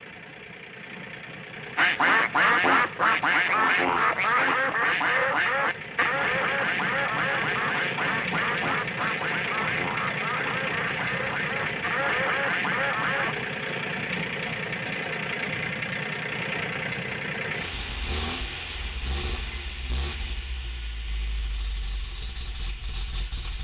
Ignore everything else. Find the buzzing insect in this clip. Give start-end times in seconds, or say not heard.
not heard.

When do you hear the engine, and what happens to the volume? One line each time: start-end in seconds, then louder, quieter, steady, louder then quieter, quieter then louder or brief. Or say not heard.
0.0-23.6 louder then quieter.